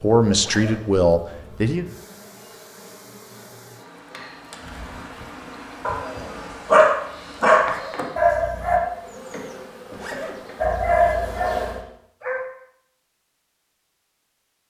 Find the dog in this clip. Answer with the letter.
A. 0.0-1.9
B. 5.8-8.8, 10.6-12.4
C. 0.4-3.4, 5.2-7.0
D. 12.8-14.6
B.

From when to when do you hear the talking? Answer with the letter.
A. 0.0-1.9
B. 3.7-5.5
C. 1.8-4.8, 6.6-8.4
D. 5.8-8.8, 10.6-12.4
A.